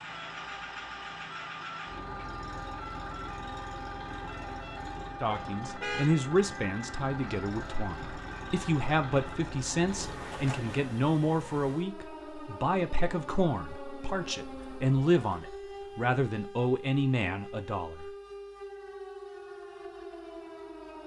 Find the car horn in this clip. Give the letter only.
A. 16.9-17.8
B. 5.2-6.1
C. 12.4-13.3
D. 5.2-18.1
B.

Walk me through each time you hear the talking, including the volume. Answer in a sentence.
You can hear the talking from 5.2 to 18.1 s, at a steady volume.